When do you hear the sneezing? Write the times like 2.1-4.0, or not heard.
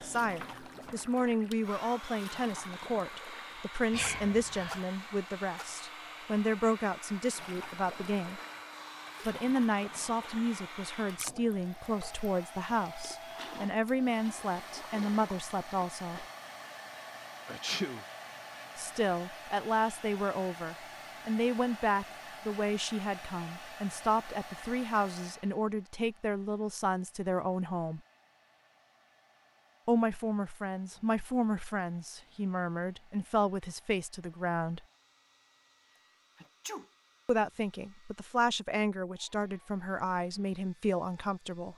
3.9-4.8, 17.4-18.1, 36.4-36.9.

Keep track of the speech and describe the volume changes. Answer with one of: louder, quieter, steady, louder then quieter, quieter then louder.
steady.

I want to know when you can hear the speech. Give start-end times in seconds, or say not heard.
0.0-8.4, 9.2-16.2, 18.8-28.0, 29.9-34.8, 37.2-41.7.